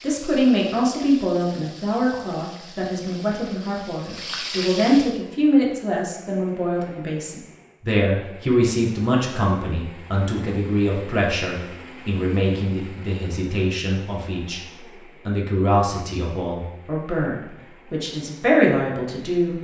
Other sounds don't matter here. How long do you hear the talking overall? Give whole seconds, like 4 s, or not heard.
19 s.